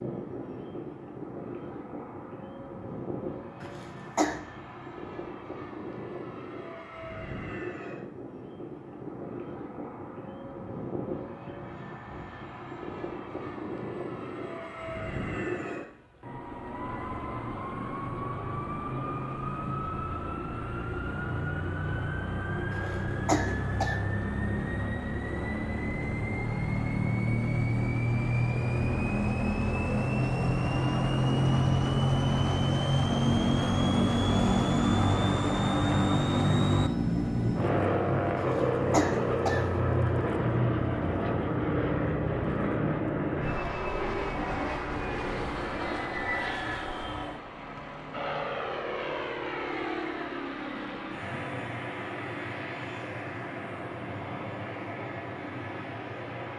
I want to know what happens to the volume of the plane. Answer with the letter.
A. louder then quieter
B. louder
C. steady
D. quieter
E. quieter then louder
A.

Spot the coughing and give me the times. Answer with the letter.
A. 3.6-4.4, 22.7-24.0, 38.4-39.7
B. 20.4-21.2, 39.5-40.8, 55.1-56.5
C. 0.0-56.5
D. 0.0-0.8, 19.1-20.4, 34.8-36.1
A.